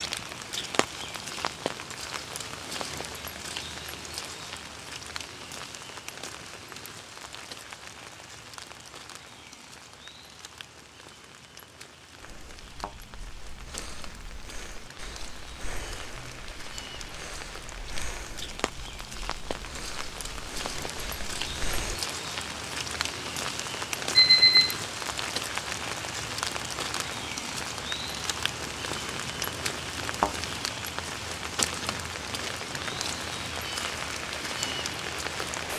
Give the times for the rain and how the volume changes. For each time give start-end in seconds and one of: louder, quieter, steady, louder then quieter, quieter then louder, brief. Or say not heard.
0.0-35.7 quieter then louder.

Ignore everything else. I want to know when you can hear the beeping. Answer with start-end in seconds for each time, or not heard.
24.1-24.8.